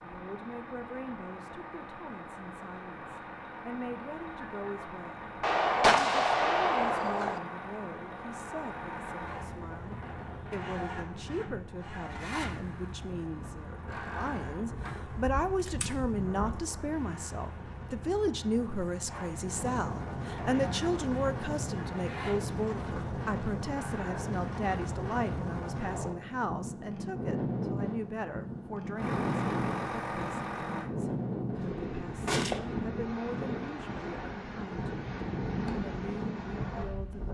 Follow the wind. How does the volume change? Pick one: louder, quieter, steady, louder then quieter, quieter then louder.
louder.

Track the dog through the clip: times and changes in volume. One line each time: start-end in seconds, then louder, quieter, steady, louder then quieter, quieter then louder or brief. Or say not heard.
not heard.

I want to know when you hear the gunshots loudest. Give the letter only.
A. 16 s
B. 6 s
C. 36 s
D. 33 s
B.